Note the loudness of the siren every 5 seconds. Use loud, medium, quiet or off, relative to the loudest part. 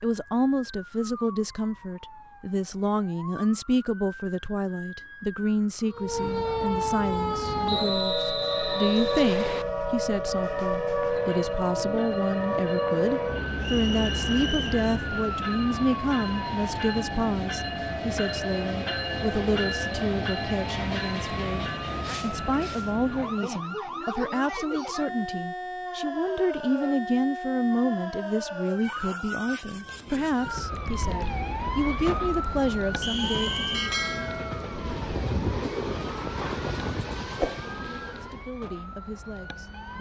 quiet, loud, loud, medium, medium, medium, medium, quiet.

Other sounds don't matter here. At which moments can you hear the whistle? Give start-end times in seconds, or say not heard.
7.7-9.7, 13.6-14.8, 33.0-33.9.